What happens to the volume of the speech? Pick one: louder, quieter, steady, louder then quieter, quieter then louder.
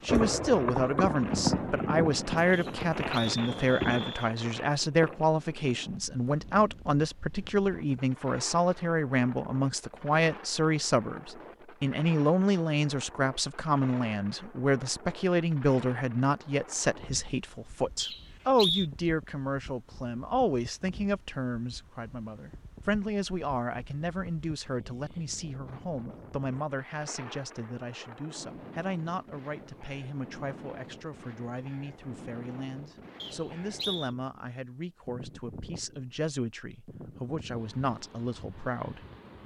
quieter.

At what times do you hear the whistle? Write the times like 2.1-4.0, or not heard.
2.5-4.3, 17.9-18.9, 33.2-34.1.